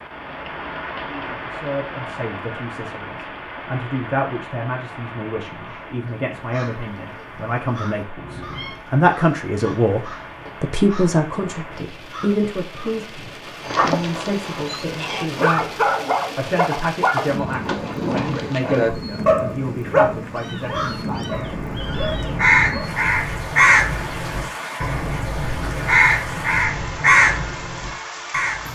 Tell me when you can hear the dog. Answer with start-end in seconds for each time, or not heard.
13.6-22.9.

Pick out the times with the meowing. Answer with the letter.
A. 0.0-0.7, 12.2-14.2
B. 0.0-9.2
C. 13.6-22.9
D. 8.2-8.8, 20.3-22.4
D.